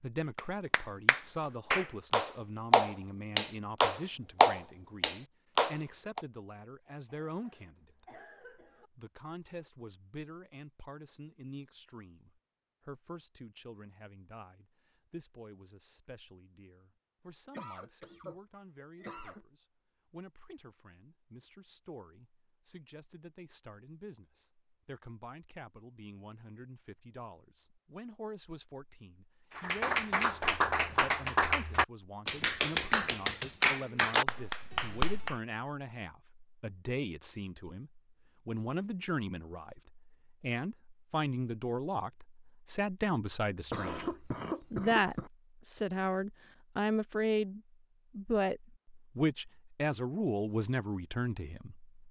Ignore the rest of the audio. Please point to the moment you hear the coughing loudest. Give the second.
45 s.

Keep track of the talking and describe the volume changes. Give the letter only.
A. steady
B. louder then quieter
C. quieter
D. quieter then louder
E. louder
D.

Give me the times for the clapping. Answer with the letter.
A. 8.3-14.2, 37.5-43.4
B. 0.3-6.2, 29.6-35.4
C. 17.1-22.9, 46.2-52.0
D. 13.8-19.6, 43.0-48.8
B.